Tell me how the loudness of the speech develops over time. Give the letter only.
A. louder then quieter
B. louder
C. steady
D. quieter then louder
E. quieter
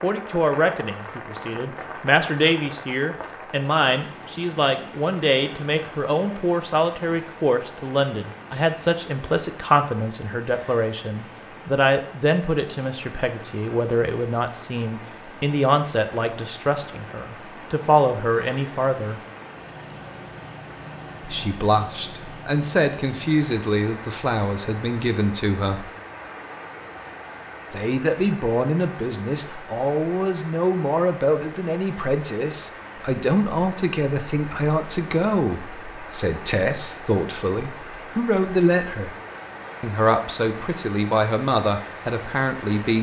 C.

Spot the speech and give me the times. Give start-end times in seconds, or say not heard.
0.0-19.2, 21.2-25.9, 27.7-39.1, 39.8-42.9.